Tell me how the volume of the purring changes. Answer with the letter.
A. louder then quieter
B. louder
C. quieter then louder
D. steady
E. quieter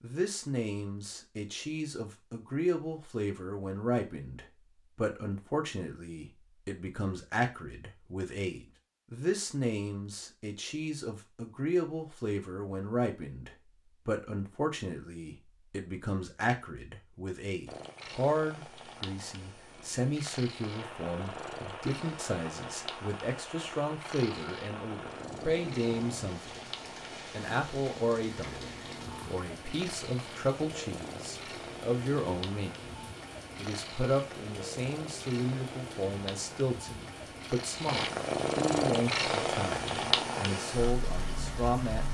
B.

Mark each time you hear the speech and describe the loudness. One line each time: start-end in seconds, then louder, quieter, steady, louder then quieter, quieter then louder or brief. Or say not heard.
0.0-26.6 steady
27.3-42.0 steady.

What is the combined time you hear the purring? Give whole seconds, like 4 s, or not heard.
24 s.